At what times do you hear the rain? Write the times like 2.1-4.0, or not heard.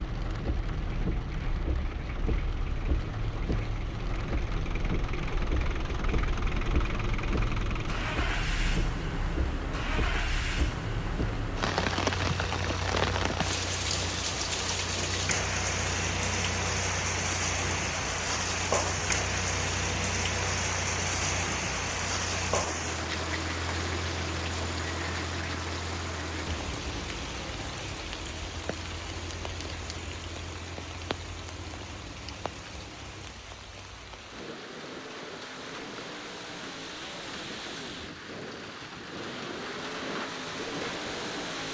0.0-41.6.